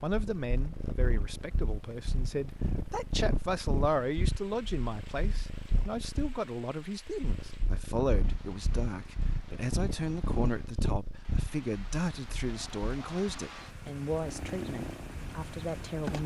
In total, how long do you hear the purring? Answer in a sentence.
You can hear the purring for 16 seconds altogether.